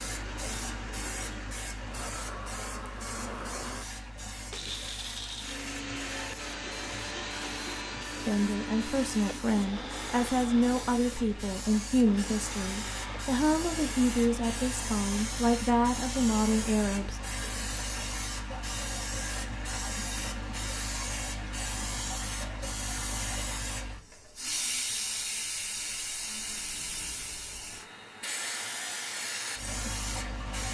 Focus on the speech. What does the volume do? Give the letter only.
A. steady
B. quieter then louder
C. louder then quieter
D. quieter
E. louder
A.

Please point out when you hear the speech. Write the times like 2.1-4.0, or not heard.
8.2-17.2.